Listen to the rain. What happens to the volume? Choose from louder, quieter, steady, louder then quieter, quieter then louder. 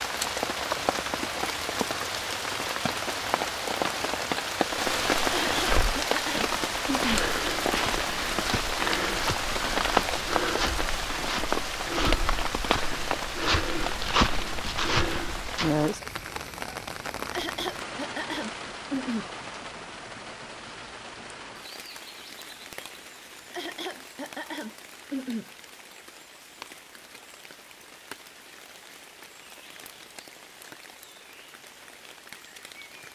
quieter.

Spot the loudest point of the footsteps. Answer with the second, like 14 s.
14 s.